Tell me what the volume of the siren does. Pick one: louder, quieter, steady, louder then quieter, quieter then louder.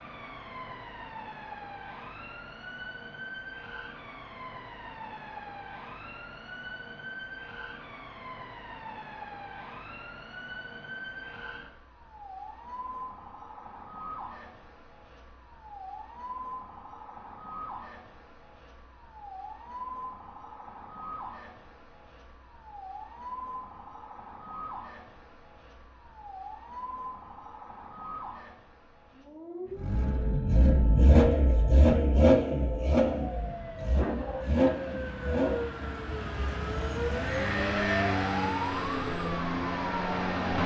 louder.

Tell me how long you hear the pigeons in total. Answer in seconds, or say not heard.
not heard.